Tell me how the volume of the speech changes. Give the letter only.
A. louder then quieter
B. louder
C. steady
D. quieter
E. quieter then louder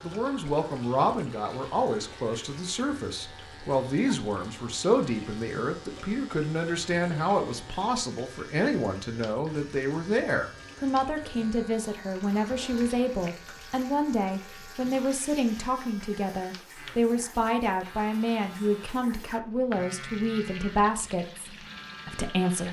C.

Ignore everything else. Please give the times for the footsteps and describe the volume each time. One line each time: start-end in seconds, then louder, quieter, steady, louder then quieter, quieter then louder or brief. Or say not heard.
not heard.